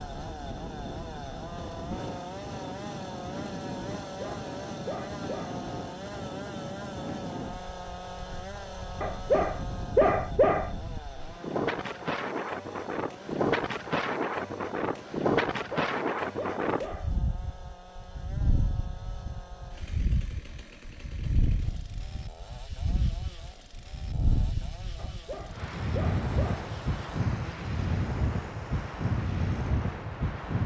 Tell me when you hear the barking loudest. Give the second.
10 s.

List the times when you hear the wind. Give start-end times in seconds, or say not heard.
0.0-30.6.